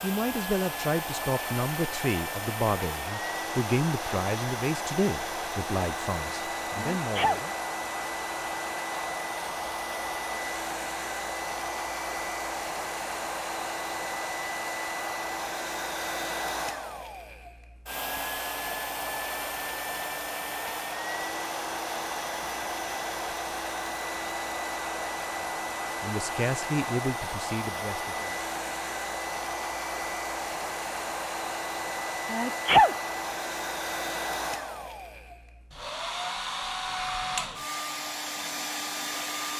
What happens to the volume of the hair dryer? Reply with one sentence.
The volume of the hair dryer stays about the same.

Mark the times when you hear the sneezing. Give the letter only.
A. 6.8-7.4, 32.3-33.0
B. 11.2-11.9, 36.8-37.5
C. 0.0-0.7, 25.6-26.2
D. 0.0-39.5
A.